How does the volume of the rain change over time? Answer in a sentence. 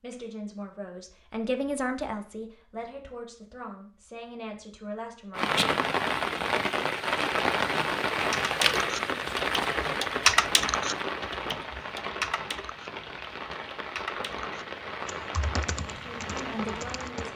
The loudness of the rain goes down.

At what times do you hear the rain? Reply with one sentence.
You can hear the rain from 5.3 to 17.3 s.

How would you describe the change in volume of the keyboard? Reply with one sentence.
The loudness of the keyboard goes down.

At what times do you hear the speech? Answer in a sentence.
You can hear the speech from 0.0 to 5.5 s and from 15.9 to 17.3 s.